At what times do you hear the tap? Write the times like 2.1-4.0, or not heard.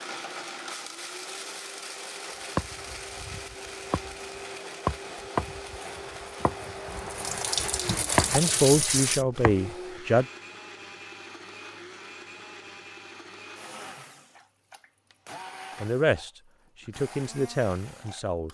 5.7-9.2.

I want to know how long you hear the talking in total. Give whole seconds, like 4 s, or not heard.
5 s.